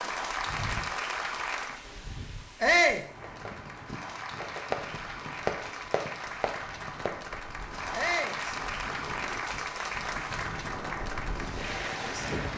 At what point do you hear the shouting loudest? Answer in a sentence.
The loudest moment of the shouting is at 3 seconds.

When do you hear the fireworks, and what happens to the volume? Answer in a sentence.
You can hear the fireworks from 3.2 to 7.3 s, getting louder then quieter.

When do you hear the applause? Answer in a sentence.
The applause can be heard from 0.0 to 1.9 s and from 3.1 to 12.5 s.